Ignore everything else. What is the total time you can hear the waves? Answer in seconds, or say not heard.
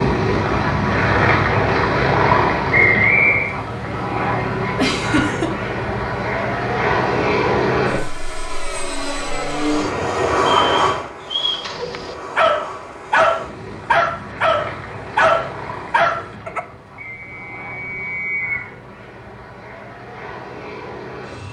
not heard.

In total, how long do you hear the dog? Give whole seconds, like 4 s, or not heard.
5 s.